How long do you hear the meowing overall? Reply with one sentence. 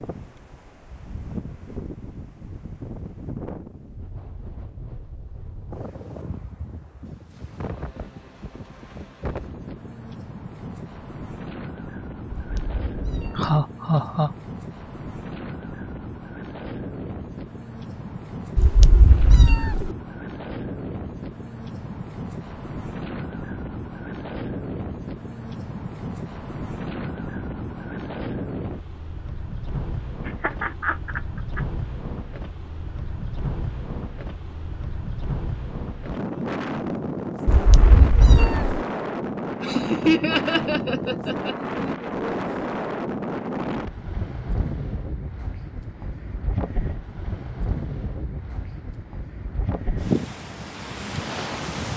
You can hear the meowing for 4 seconds altogether.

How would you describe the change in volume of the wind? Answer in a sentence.
The volume of the wind goes up.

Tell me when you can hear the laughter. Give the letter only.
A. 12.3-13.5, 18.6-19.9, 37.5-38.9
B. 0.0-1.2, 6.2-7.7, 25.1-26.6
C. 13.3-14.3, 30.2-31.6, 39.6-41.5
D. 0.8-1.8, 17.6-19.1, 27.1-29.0
C.